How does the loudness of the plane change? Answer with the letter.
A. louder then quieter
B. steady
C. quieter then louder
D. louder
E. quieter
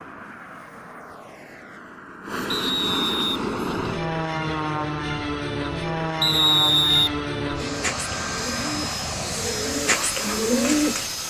D.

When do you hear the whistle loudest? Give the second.
7 s.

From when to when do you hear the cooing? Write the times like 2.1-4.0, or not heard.
7.5-11.1.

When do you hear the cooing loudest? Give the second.
11 s.